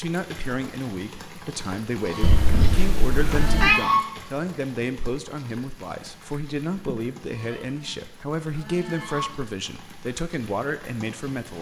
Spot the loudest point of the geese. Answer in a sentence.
The loudest moment of the geese is at 4 seconds.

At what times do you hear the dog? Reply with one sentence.
The dog can't be heard in this clip.